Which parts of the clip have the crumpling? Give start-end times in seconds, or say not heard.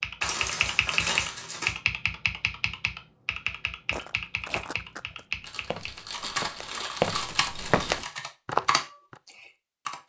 0.2-1.8, 5.5-8.2.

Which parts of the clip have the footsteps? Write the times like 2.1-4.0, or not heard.
3.9-9.2.